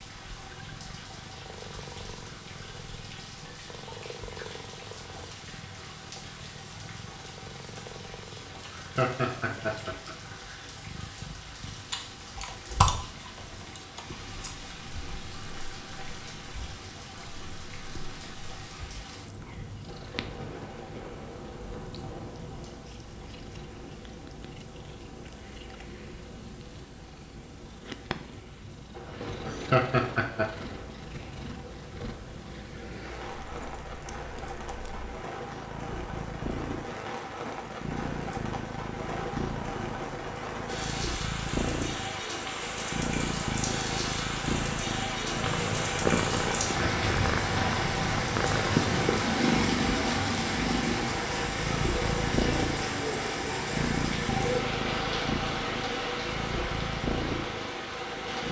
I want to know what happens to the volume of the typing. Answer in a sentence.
The volume of the typing goes down.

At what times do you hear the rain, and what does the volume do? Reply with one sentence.
You can hear the rain from 0.0 to 58.4 s, getting louder.